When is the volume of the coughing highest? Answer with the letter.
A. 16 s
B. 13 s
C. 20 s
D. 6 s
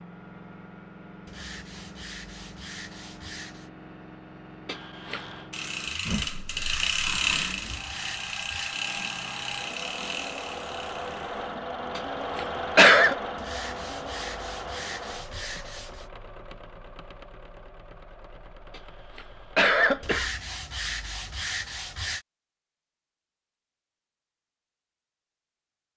B.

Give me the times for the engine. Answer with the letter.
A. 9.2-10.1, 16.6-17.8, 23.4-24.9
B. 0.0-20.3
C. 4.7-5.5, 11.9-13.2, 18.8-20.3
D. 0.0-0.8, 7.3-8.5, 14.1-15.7
B.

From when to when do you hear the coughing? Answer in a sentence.
You can hear the coughing from 4.7 to 5.5 s, from 11.9 to 13.2 s and from 18.8 to 20.3 s.